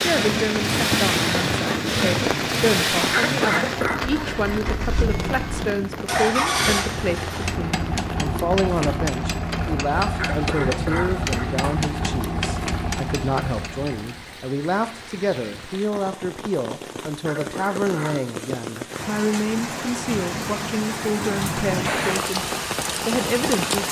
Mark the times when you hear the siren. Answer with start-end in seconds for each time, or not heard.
not heard.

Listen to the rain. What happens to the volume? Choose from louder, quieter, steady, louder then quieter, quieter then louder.
quieter then louder.